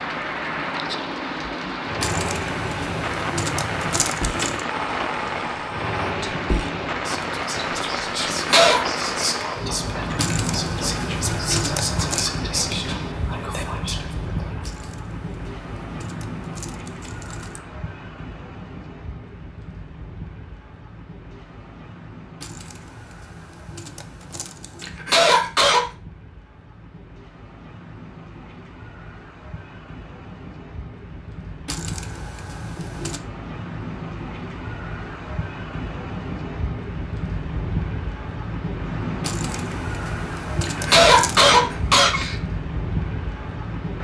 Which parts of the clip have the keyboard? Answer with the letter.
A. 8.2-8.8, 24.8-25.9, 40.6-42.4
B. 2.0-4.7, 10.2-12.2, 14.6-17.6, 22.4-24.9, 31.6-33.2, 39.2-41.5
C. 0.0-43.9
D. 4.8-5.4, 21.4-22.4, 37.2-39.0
B.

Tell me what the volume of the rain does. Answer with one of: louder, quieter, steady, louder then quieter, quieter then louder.
quieter then louder.